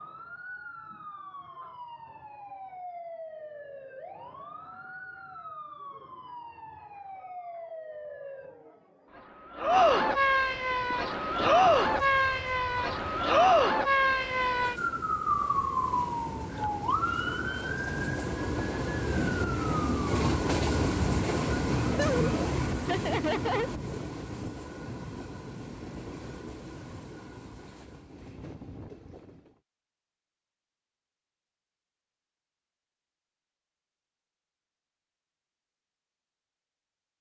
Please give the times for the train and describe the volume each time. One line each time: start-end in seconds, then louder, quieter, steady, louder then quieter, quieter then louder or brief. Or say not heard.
10.4-29.6 louder then quieter.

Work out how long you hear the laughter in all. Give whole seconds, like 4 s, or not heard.
2 s.